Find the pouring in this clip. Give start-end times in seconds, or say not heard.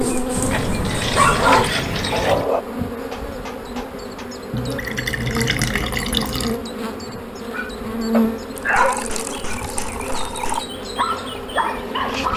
0.3-2.5, 4.5-6.6, 8.6-10.7.